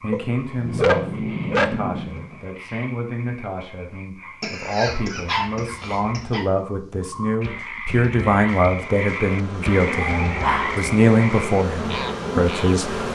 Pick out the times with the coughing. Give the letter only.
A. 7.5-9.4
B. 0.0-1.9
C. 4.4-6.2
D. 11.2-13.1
C.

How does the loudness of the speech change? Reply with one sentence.
The volume of the speech goes up.